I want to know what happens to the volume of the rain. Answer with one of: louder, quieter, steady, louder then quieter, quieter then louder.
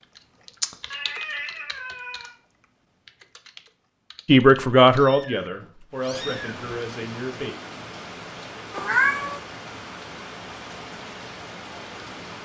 steady.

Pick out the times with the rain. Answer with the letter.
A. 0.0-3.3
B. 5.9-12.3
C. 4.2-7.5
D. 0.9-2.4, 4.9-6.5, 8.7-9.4
B.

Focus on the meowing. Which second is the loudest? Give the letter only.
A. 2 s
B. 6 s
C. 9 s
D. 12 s
C.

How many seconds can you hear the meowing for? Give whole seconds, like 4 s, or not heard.
4 s.